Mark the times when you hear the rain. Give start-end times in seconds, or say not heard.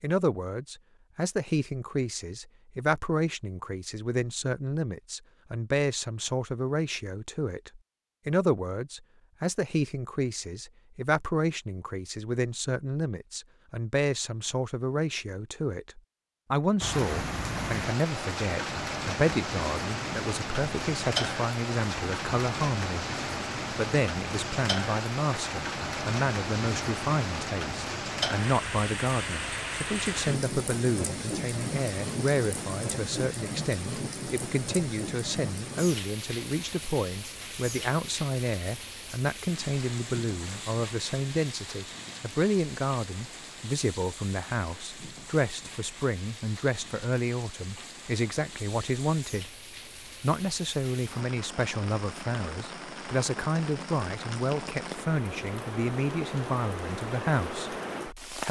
16.8-58.4.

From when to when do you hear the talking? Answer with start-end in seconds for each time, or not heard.
0.0-23.1, 23.7-49.5, 50.2-58.4.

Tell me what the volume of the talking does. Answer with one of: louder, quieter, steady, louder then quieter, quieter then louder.
steady.